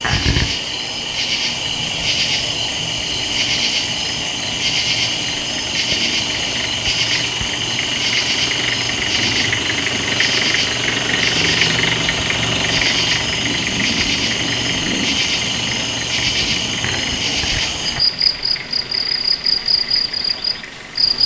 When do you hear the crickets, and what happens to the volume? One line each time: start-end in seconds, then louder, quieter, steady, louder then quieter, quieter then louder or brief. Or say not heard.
0.0-21.2 steady.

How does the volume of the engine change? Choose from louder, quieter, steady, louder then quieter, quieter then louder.
louder then quieter.